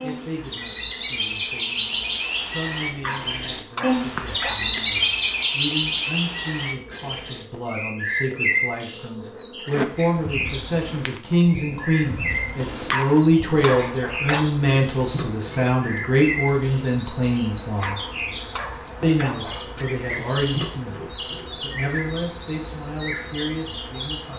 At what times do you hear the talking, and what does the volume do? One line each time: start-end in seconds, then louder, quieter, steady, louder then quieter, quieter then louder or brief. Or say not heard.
0.0-18.0 louder
19.0-21.0 brief
21.6-24.3 brief.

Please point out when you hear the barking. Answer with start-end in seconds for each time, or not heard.
2.9-4.8, 12.6-14.6, 17.6-19.5.